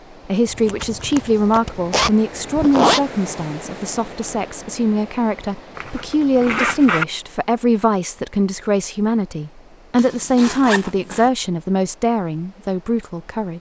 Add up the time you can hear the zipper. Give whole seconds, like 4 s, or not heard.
5 s.